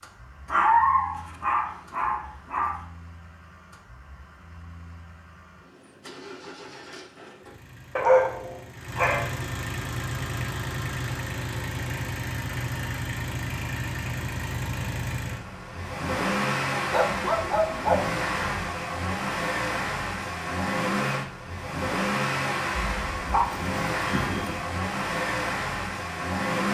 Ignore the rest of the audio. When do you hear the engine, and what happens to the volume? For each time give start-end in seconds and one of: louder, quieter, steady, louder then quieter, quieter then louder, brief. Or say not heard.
0.0-26.6 louder.